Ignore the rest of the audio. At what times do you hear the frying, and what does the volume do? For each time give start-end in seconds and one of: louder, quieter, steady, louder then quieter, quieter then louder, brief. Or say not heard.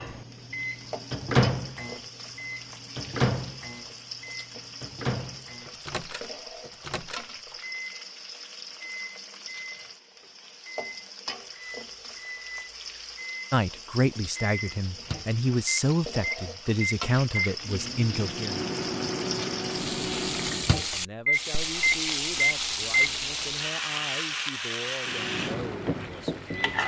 0.0-26.8 louder.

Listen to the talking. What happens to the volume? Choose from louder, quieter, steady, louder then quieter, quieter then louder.
quieter.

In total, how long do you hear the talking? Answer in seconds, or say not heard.
11 s.